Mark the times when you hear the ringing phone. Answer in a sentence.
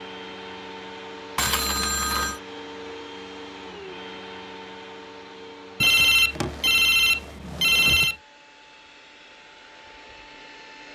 You can hear the ringing phone from 1.4 to 2.4 s and from 5.8 to 8.2 s.